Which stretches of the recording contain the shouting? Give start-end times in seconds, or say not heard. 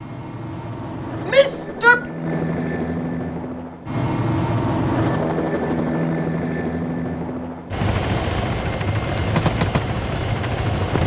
1.2-2.0.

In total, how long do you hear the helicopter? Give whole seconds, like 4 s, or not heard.
11 s.